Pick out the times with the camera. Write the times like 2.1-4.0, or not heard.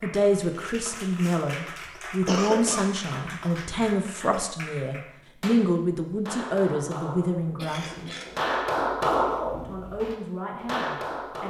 not heard.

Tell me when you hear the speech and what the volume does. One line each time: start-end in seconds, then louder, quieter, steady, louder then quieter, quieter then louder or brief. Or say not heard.
0.0-8.2 steady
9.4-11.4 brief.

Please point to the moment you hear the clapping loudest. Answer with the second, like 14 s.
9 s.